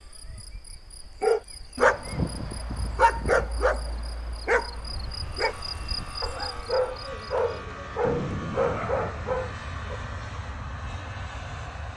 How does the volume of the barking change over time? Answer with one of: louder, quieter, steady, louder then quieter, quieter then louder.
quieter then louder.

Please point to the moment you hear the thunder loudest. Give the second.
8 s.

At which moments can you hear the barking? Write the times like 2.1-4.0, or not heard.
1.2-10.0.